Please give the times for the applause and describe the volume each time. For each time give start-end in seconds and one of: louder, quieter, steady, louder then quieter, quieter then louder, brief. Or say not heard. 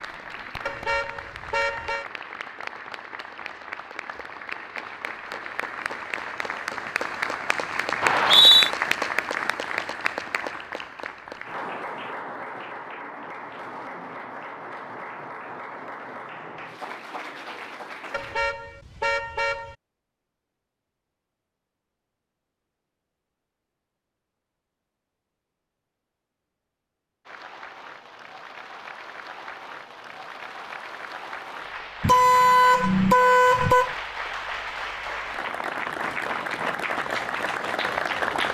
0.0-18.4 louder then quieter
27.2-38.4 louder.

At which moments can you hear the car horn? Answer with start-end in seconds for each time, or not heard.
0.7-2.0, 18.1-19.8, 32.0-34.0.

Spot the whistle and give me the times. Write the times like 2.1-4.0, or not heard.
8.0-8.7.